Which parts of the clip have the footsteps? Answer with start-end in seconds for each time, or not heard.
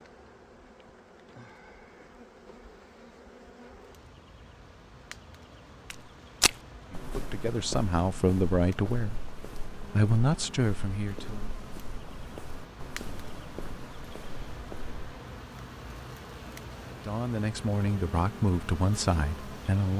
5.9-14.9.